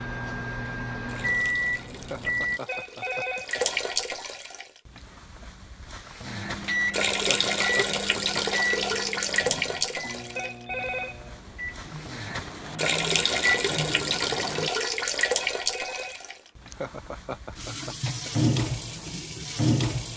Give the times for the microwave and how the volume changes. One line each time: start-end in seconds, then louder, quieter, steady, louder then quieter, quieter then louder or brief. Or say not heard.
0.0-2.6 brief
6.2-14.7 quieter then louder.